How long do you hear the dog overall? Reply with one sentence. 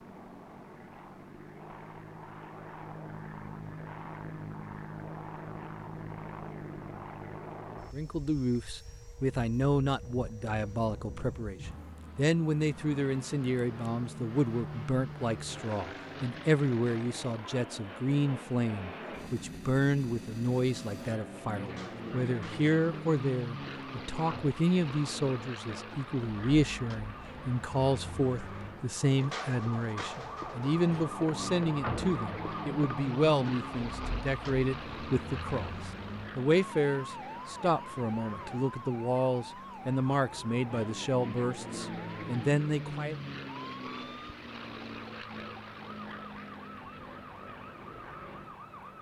The dog can't be heard in this clip.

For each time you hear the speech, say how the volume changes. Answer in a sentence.
You can hear the speech from 7.9 to 43.2 s, at a steady volume.